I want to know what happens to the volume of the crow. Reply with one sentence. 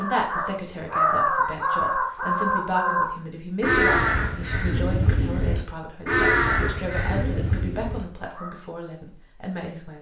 The loudness of the crow goes down.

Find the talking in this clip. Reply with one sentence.
You can hear the talking from 0.0 to 9.9 s.